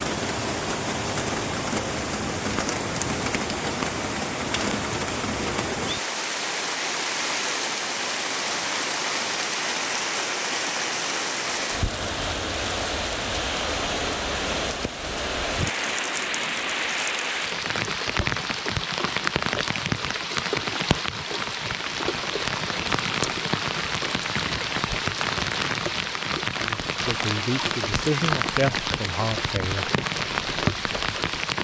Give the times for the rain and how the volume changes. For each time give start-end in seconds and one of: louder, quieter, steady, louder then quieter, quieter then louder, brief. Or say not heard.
0.0-31.5 steady.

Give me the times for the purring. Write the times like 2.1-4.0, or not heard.
not heard.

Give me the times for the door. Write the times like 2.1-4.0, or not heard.
not heard.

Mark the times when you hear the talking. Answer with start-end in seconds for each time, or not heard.
26.6-29.9.